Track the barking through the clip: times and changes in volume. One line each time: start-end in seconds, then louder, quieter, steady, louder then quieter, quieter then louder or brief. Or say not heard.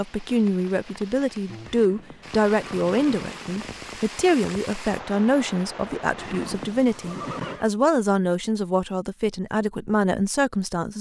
not heard.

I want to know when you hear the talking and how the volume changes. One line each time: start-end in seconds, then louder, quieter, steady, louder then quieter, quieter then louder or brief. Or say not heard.
0.0-10.9 steady.